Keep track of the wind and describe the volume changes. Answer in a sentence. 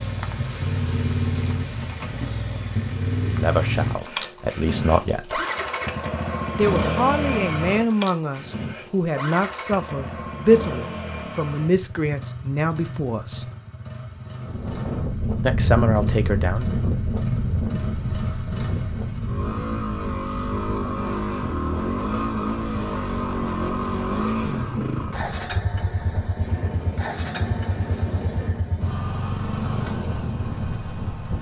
The volume of the wind goes down.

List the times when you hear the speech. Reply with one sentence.
The speech can be heard from 3.2 to 5.4 s, from 6.5 to 13.5 s and from 15.4 to 16.7 s.